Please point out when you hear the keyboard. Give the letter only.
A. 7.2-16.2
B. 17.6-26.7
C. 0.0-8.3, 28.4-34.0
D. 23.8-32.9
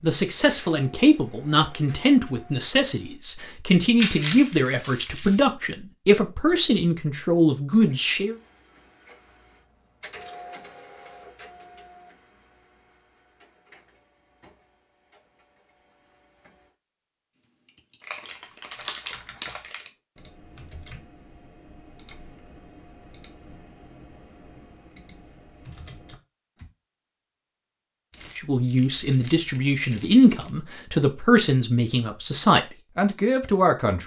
B.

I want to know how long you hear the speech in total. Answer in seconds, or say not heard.
14 s.